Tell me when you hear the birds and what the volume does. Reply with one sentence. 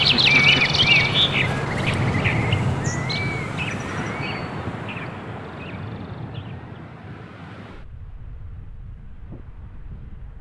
You can hear the birds from 0.0 to 6.8 s, getting quieter.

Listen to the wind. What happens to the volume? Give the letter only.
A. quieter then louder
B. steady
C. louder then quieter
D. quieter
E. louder
D.